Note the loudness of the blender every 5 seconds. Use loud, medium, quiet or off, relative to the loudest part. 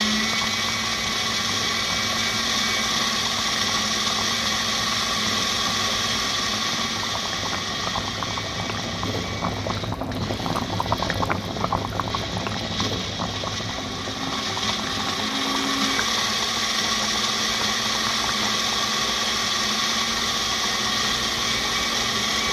loud, loud, medium, loud, loud.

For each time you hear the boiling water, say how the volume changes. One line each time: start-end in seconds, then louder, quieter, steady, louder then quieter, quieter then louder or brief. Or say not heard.
0.0-22.4 louder then quieter.